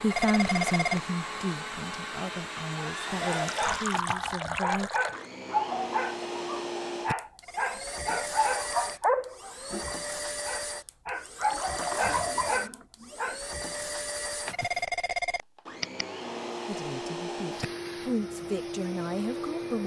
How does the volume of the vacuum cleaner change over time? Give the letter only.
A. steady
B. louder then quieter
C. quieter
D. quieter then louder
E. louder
A.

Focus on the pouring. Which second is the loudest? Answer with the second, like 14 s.
4 s.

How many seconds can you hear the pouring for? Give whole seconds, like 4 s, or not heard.
3 s.